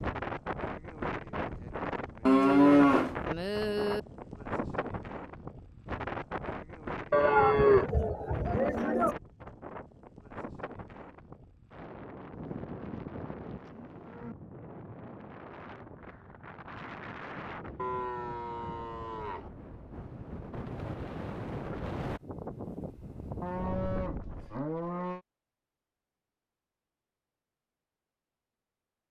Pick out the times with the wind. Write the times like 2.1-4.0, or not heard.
0.0-24.6.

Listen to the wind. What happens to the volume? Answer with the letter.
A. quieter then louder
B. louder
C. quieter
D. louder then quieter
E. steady
A.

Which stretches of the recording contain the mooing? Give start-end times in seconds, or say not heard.
2.2-4.0, 7.1-9.2, 12.3-14.3, 17.8-19.5, 23.4-25.2.